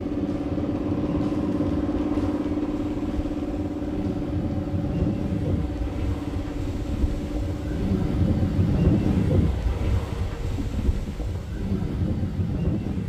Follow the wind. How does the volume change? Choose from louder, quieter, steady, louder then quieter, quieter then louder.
louder then quieter.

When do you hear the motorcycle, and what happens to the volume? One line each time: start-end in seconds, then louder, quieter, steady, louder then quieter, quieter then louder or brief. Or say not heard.
0.0-9.3 quieter.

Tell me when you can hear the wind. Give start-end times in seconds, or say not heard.
0.0-13.0.